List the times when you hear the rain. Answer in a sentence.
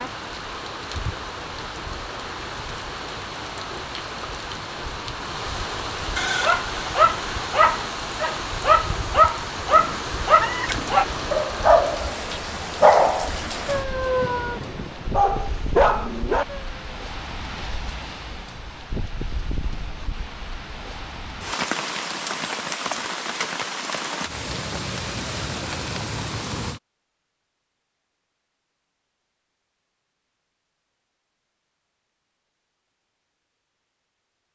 You can hear the rain from 0.0 to 26.8 s.